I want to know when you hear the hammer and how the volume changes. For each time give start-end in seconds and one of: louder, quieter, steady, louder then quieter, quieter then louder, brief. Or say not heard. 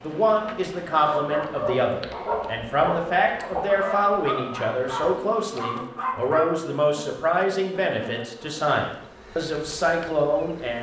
not heard.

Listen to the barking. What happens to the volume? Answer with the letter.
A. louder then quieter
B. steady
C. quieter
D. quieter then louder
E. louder
B.